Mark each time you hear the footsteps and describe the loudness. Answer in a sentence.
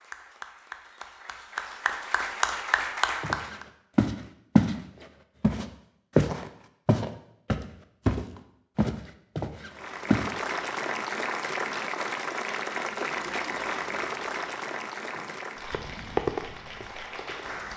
The footsteps can be heard briefly from 3.2 to 4.8 s; and from 5.4 to 10.2 s, getting quieter.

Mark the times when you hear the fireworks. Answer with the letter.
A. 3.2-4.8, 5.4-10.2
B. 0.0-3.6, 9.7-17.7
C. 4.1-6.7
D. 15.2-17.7
D.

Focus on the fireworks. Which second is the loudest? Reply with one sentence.
The loudest moment of the fireworks is at 16 seconds.